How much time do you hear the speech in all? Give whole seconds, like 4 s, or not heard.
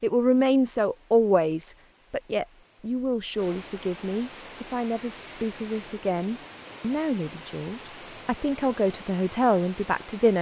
10 s.